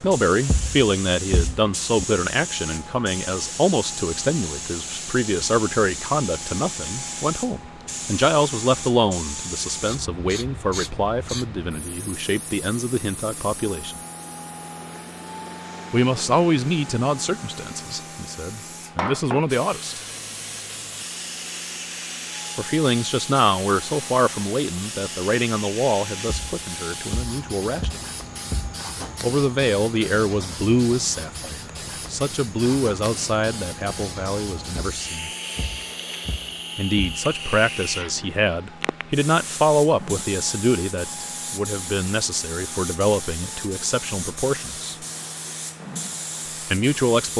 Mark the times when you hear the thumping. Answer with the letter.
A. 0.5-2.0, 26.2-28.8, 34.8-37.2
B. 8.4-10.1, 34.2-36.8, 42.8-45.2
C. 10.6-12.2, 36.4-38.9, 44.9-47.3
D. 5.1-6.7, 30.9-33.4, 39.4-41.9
A.